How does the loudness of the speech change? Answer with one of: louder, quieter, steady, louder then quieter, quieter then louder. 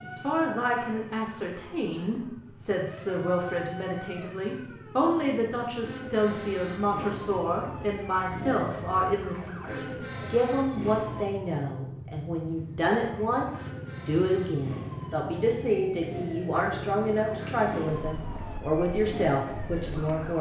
steady.